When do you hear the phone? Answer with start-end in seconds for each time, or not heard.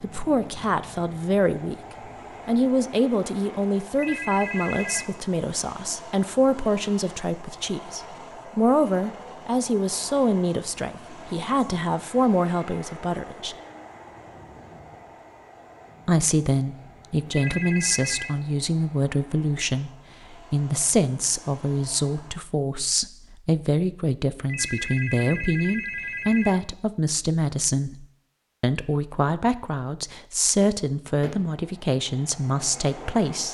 3.9-5.1, 17.2-18.4, 24.4-26.6.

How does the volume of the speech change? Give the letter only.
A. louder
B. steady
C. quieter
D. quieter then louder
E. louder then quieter
B.